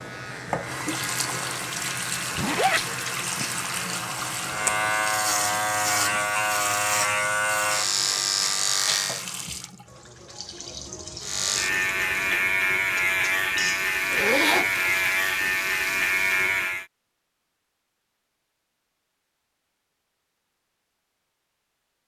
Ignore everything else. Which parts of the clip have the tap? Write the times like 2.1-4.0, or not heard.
0.0-16.6.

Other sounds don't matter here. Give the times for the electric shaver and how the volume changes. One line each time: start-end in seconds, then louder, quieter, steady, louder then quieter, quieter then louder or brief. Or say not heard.
0.0-9.2 louder
11.2-16.9 steady.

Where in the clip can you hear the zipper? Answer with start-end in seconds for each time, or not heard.
2.4-2.8, 14.1-14.9.